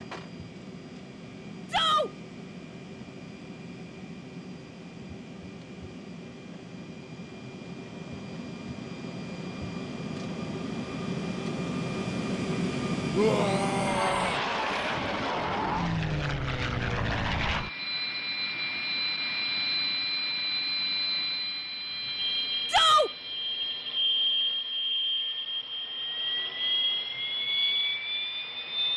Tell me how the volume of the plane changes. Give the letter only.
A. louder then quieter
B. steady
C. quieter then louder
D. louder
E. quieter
D.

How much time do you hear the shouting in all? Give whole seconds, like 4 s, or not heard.
2 s.